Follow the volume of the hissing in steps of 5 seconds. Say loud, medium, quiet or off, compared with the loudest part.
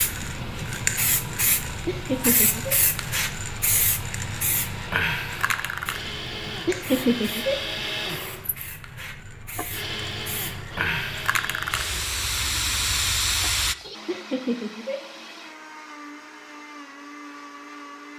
loud, medium, loud, off.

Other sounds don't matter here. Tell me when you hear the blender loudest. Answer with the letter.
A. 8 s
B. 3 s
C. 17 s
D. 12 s
A.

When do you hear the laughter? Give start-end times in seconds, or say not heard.
1.9-2.8, 6.7-7.5, 14.1-14.9.